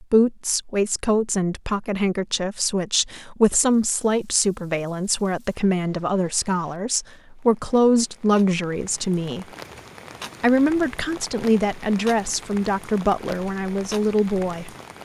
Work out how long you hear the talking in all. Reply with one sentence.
The talking can be heard for 14 seconds in total.